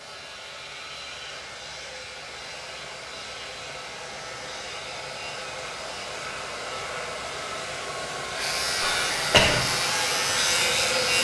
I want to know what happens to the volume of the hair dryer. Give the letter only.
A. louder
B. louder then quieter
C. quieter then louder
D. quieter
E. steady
A.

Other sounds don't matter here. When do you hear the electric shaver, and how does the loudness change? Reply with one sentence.
The electric shaver can be heard from 0.0 to 11.2 s, getting louder.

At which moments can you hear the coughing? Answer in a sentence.
The coughing can be heard from 8.8 to 9.6 s.